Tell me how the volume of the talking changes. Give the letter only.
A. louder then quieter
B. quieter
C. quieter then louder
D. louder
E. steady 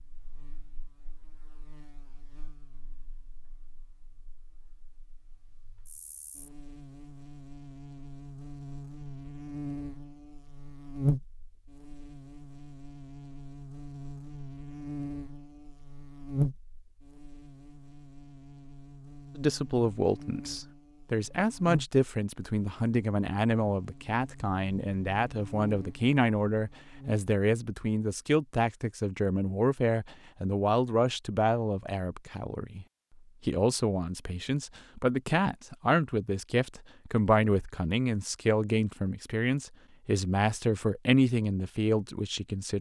E.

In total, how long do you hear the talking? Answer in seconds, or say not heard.
23 s.